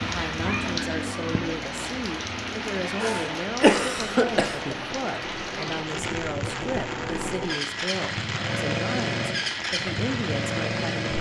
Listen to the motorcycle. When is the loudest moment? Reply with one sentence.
The volume of the motorcycle peaks at 9 seconds.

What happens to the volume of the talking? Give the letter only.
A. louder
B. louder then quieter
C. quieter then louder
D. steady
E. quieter
D.